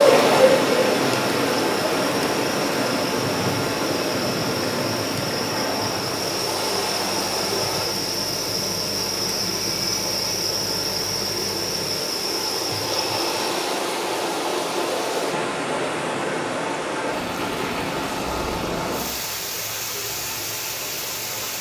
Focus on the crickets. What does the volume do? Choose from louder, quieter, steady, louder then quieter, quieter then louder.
louder.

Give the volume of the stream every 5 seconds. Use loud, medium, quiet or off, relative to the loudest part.
loud, medium, medium, medium, medium.